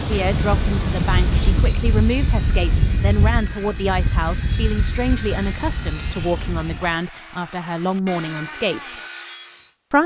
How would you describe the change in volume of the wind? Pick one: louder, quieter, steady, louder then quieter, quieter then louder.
quieter.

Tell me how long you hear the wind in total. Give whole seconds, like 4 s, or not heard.
7 s.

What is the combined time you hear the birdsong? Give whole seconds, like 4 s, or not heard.
not heard.